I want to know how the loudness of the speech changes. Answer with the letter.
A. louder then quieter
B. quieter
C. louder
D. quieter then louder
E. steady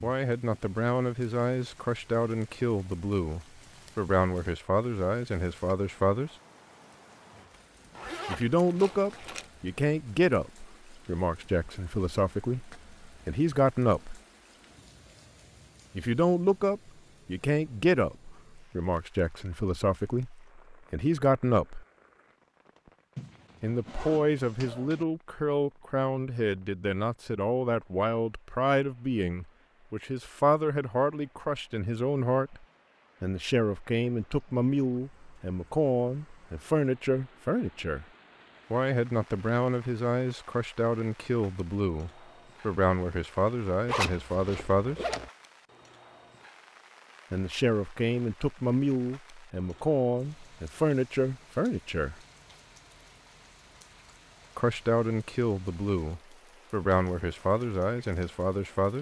E.